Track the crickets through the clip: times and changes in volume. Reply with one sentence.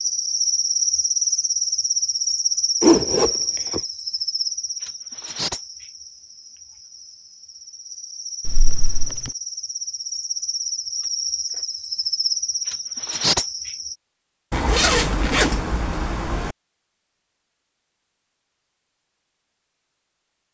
The crickets can be heard from 0.0 to 13.9 s, getting quieter then louder.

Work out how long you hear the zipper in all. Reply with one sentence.
The zipper can be heard for 4 seconds in total.